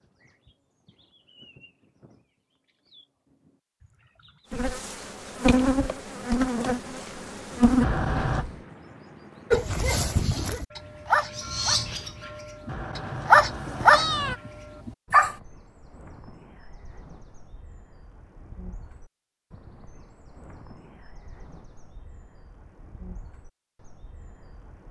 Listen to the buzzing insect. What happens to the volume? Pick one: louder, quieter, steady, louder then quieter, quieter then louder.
quieter then louder.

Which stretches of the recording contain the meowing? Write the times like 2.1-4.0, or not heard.
7.8-8.4, 12.7-14.4.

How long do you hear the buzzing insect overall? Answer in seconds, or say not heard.
4 s.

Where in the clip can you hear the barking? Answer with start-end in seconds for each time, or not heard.
9.5-11.8, 12.7-14.1, 14.8-15.3.